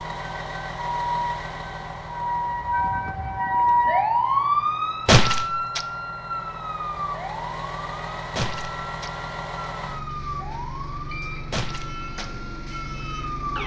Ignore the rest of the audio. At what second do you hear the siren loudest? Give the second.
4 s.